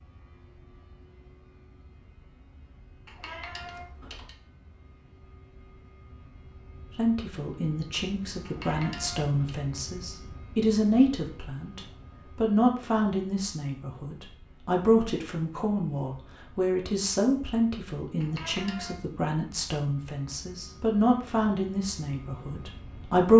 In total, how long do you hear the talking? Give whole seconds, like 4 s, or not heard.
16 s.